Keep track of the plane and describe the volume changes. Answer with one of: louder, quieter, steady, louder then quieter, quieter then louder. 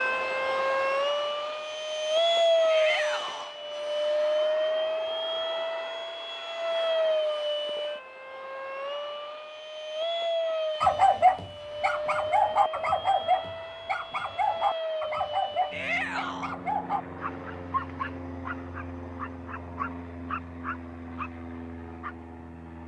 quieter.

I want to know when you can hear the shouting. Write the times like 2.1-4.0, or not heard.
2.6-3.5, 15.7-16.6.